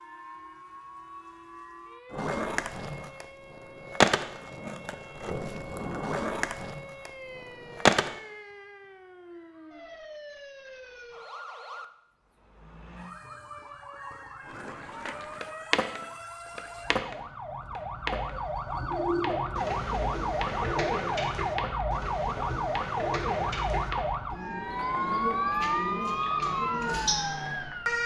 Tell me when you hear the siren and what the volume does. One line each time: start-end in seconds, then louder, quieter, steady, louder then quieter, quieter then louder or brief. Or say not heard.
0.0-28.0 louder.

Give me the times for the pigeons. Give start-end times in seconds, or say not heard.
18.2-27.7.